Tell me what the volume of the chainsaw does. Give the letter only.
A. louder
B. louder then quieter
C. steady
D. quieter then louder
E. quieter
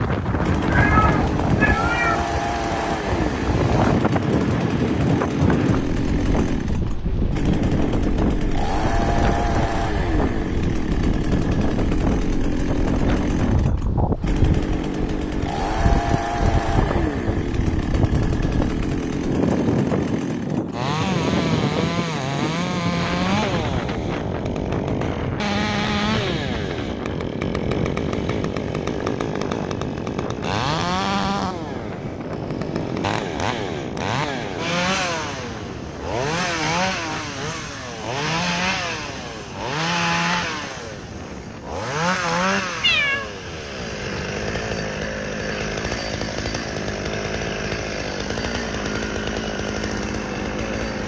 C.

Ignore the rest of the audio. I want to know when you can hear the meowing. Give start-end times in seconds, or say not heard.
0.7-2.2, 42.8-43.3.